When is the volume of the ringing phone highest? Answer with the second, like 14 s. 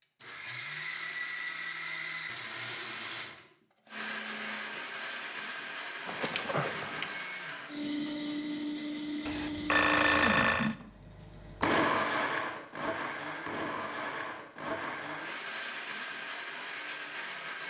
10 s.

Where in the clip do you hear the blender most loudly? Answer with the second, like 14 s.
12 s.